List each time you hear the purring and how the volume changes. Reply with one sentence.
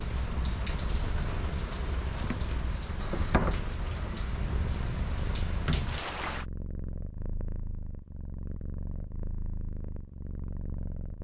The purring can be heard from 0.0 to 11.1 s, at a steady volume.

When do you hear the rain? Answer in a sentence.
The rain can be heard from 0.0 to 6.5 s.